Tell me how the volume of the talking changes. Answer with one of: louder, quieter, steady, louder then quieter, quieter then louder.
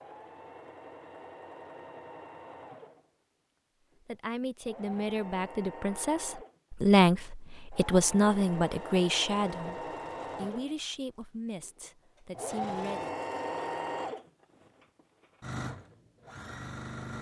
louder then quieter.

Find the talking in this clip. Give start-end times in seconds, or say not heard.
4.0-13.1.